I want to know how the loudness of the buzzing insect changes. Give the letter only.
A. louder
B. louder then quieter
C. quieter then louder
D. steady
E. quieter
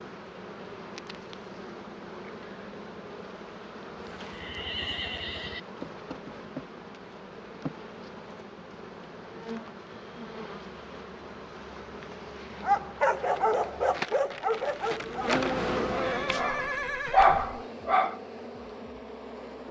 A.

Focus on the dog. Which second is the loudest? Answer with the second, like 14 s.
17 s.